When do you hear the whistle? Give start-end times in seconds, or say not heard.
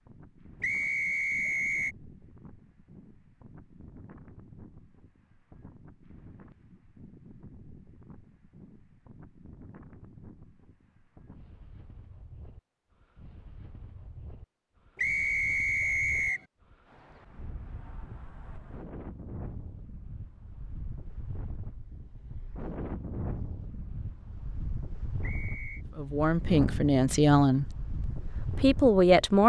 0.6-1.9, 14.9-16.4, 25.2-25.9.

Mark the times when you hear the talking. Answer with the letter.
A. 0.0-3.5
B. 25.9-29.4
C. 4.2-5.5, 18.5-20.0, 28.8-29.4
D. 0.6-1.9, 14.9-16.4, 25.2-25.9
B.